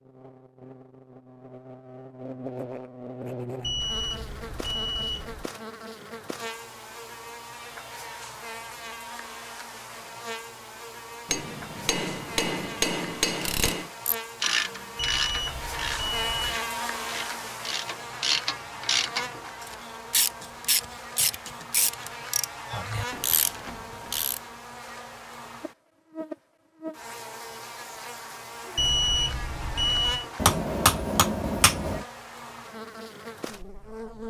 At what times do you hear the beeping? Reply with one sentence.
The beeping can be heard from 3.6 to 5.5 s, from 14.9 to 16.6 s and from 28.8 to 30.2 s.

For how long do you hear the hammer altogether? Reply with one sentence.
The hammer can be heard for 4 seconds in total.